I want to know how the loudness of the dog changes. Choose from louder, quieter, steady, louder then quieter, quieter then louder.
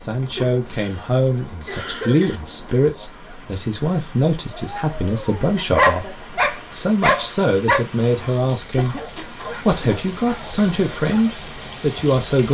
quieter.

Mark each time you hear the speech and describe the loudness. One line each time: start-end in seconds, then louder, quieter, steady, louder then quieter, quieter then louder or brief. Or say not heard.
0.0-9.0 steady
9.7-12.4 brief.